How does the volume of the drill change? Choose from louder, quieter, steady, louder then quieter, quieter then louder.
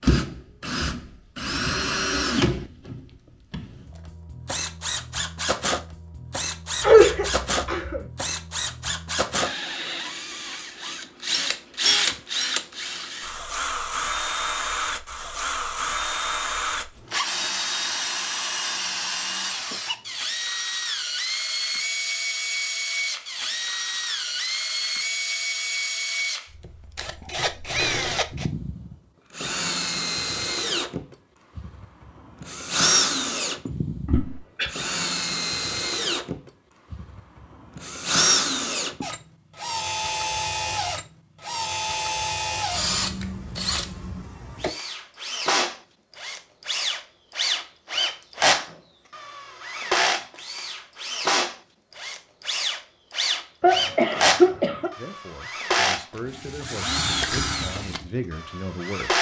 steady.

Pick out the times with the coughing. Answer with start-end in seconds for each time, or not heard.
6.8-8.0, 34.0-34.7, 53.6-54.9.